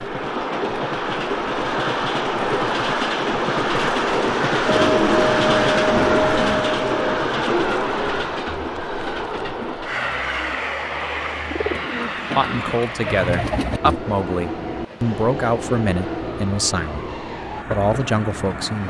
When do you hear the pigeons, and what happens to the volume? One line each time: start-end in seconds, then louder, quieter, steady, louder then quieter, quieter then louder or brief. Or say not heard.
4.7-14.0 quieter then louder.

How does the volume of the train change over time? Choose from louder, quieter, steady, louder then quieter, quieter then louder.
quieter.